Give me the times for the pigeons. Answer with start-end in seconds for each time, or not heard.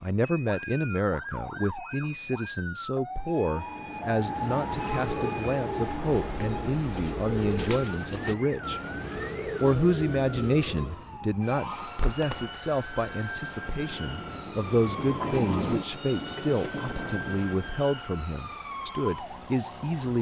3.9-11.2.